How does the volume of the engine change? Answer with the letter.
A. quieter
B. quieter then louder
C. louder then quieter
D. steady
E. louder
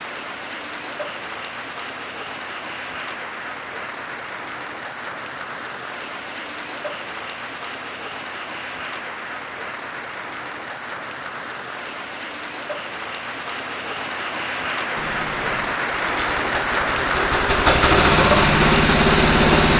E.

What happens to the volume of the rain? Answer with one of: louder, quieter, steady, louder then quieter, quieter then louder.
louder.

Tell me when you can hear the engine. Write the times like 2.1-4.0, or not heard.
14.9-19.7.